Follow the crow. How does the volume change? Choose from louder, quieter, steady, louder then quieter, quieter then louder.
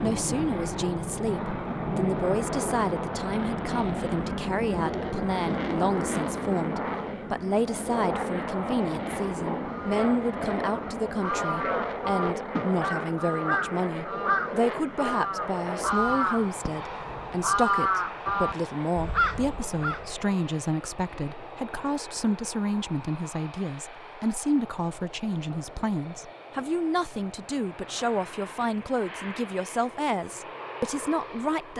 louder.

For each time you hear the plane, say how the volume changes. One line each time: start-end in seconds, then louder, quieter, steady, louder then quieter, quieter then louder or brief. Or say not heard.
0.0-31.7 quieter.